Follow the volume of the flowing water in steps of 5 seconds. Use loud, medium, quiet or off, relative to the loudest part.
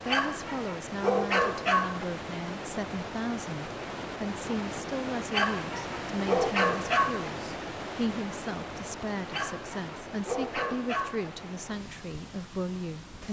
loud, loud, medium.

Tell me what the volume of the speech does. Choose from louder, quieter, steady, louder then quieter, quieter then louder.
steady.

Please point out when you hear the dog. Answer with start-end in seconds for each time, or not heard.
0.1-2.0, 5.3-7.3, 9.2-11.3.